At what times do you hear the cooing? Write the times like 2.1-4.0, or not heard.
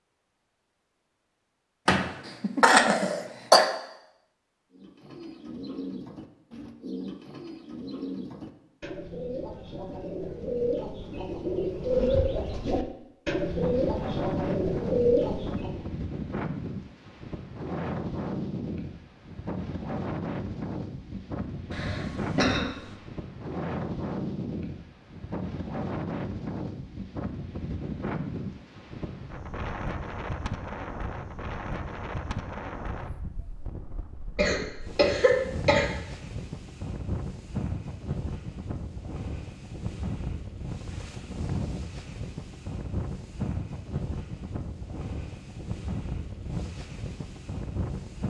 4.7-15.8.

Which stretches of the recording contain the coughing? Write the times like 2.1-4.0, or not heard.
1.9-3.6, 21.7-22.9, 34.4-35.9.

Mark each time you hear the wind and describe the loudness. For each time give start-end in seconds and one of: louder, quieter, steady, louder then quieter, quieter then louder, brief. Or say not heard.
13.4-48.2 steady.